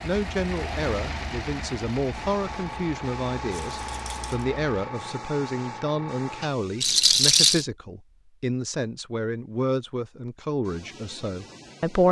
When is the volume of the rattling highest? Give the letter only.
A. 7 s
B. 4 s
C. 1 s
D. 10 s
A.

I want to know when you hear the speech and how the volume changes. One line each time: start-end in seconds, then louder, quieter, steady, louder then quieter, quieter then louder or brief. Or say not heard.
0.0-12.0 steady.